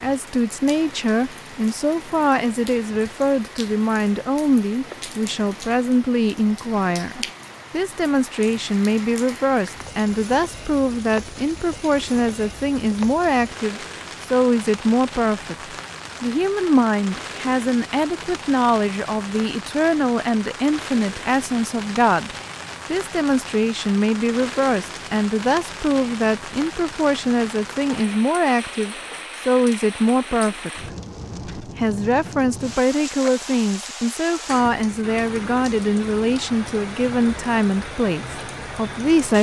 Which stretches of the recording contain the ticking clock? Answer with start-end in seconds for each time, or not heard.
not heard.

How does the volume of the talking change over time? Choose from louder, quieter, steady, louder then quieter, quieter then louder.
steady.